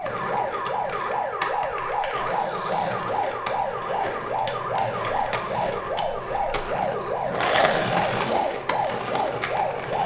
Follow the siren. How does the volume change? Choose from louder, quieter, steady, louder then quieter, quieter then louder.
steady.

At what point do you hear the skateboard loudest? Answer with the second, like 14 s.
8 s.